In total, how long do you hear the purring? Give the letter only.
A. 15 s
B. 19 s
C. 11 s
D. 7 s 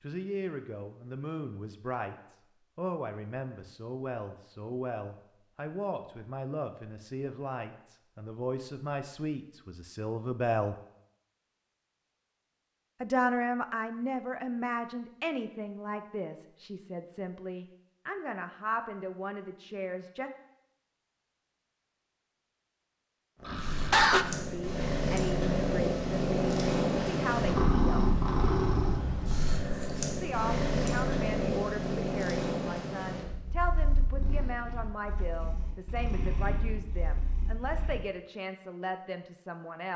A.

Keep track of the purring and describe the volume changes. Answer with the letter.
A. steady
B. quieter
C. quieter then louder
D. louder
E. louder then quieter
B.